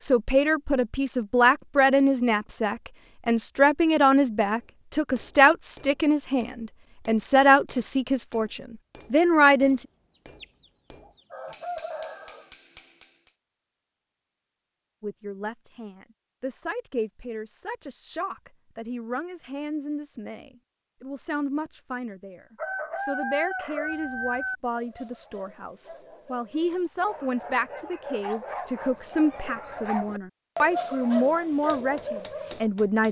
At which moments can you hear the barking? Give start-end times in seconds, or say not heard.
23.8-32.6.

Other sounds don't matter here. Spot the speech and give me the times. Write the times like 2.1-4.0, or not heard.
0.0-9.8, 15.0-33.0.